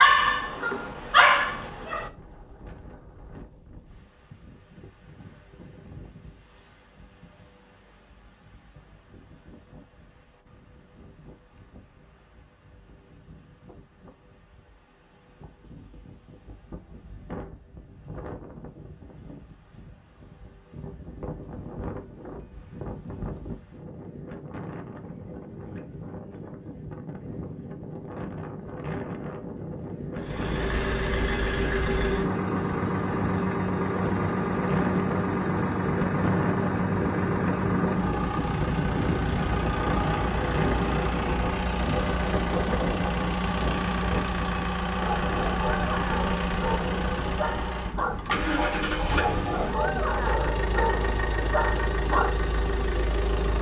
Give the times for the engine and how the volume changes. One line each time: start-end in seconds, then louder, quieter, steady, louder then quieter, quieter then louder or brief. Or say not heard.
30.1-53.5 steady.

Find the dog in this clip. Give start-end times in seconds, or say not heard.
0.0-2.1, 45.0-52.4.